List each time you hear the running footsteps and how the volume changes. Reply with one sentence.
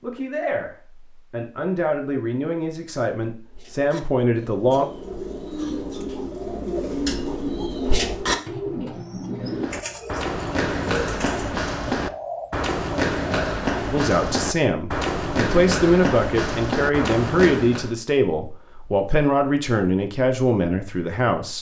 The running footsteps can be heard from 9.4 to 17.9 s, at a steady volume.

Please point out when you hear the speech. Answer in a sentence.
The speech can be heard from 0.0 to 4.9 s and from 13.9 to 21.5 s.